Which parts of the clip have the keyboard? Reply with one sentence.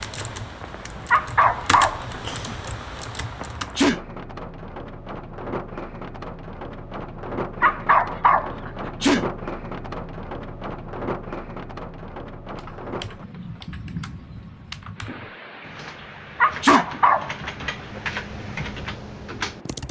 You can hear the keyboard from 0.0 to 3.8 s and from 12.6 to 19.8 s.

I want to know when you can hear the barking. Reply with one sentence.
The barking can be heard from 1.1 to 2.8 s, from 7.6 to 9.1 s and from 16.4 to 18.1 s.